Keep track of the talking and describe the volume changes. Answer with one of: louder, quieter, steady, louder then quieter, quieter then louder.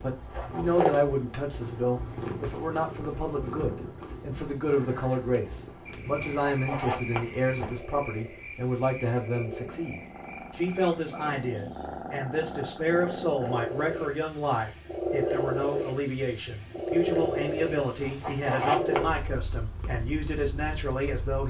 steady.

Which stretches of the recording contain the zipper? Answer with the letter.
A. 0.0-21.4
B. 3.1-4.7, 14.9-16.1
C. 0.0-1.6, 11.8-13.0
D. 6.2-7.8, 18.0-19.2
D.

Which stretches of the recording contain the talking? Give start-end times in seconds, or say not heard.
0.0-21.4.